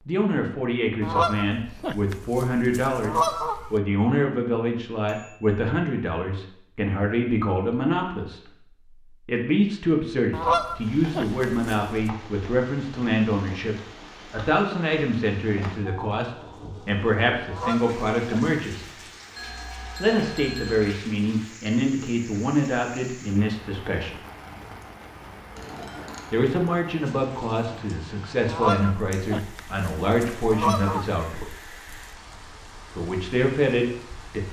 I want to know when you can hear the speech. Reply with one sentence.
You can hear the speech from 0.1 to 18.9 s, from 20.0 to 24.2 s, from 26.3 to 31.6 s and from 32.9 to 34.4 s.